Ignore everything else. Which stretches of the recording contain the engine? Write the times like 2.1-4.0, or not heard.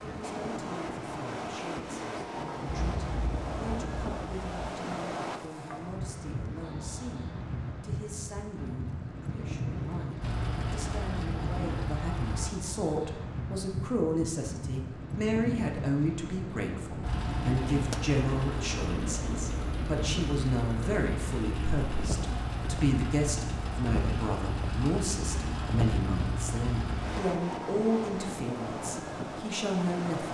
10.2-12.5, 17.0-27.2.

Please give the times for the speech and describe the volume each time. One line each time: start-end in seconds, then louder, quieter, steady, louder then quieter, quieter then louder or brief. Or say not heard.
0.0-30.2 louder.